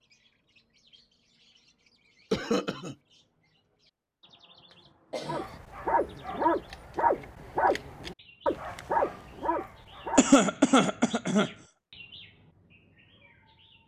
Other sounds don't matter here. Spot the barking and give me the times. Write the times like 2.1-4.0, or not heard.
5.2-10.3.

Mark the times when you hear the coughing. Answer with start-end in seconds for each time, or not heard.
2.3-3.0, 5.1-5.6, 10.2-11.5.